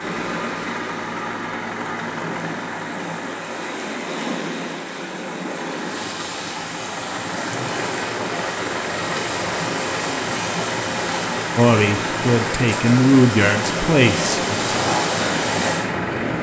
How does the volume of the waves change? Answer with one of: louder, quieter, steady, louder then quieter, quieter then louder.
louder.